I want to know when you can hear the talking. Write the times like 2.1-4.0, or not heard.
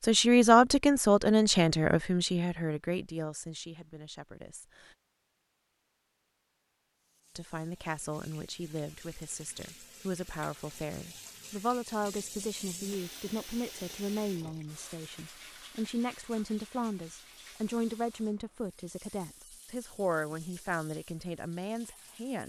0.0-4.9, 7.3-22.4.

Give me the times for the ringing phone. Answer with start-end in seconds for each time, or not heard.
not heard.